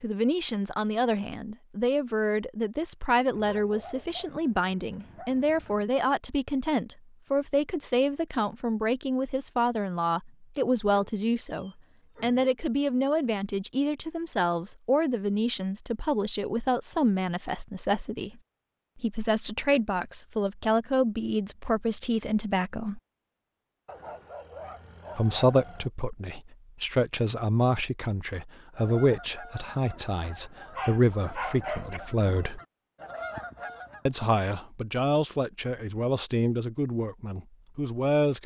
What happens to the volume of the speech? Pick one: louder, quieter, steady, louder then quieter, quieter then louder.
steady.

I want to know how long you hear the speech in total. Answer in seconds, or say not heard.
35 s.